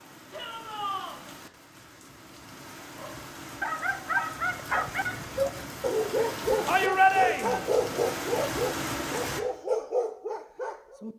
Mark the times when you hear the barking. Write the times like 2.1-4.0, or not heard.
3.0-11.1.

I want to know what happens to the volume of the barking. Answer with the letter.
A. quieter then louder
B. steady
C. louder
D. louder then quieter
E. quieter
B.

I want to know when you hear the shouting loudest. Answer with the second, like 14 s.
7 s.